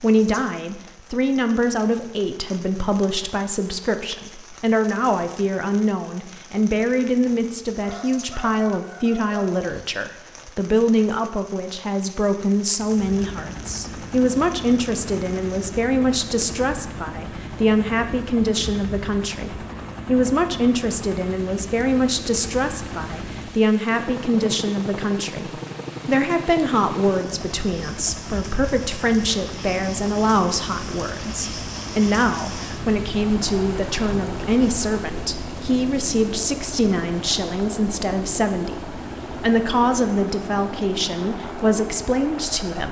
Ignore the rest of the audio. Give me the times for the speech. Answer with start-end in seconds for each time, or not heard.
0.0-42.8.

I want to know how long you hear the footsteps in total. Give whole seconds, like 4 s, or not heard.
not heard.